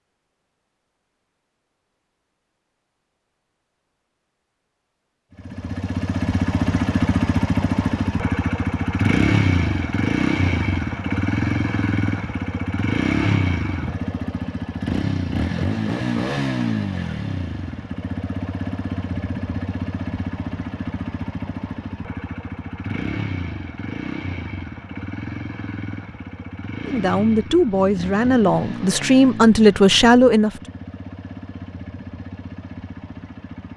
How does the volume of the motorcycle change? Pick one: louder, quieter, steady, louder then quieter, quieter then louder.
quieter.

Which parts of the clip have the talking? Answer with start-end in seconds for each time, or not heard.
26.9-30.5.